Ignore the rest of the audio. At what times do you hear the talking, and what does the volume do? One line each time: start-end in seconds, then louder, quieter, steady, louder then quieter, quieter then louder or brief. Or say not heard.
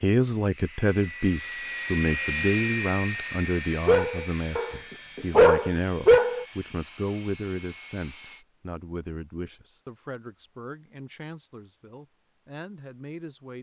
0.0-13.5 quieter.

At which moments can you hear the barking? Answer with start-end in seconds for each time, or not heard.
3.9-6.5.